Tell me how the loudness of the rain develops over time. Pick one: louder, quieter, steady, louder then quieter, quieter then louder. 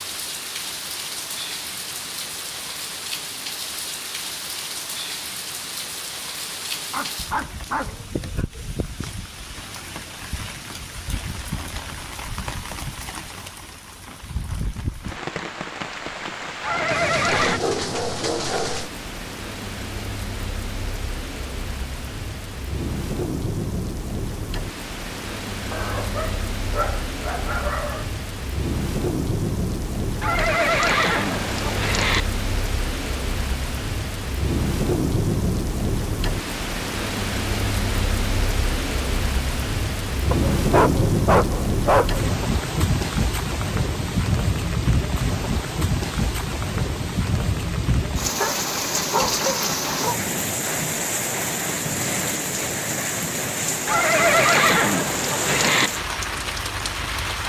louder.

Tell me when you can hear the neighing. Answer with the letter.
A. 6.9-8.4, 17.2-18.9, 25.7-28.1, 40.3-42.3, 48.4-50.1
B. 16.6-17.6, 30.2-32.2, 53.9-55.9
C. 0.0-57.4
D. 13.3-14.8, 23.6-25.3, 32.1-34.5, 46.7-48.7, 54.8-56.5
B.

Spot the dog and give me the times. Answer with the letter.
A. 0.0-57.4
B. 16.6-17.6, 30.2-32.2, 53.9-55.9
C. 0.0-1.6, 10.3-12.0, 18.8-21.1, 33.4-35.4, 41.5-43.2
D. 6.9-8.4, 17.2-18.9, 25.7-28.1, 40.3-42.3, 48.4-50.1
D.